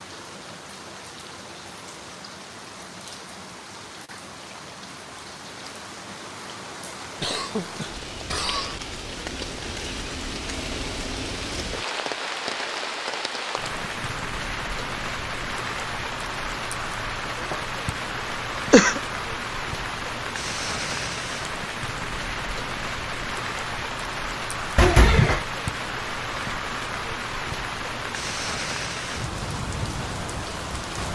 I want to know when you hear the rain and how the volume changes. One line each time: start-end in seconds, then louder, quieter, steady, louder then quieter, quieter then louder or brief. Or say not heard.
0.0-31.0 louder.